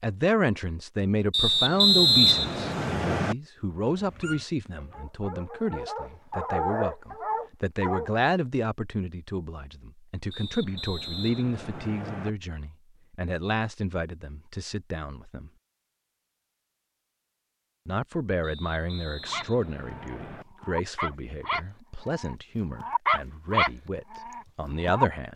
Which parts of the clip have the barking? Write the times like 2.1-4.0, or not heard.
3.9-8.1, 19.2-25.1.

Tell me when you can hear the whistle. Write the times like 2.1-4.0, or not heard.
1.3-3.4, 10.3-12.3, 18.4-20.4.